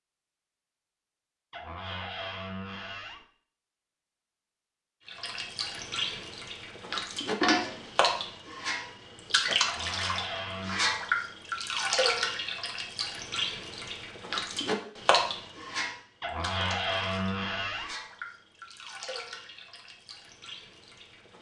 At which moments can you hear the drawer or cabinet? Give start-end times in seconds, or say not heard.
1.5-3.2, 9.7-10.9, 16.2-17.9.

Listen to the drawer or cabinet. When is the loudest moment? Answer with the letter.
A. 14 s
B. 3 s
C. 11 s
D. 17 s
D.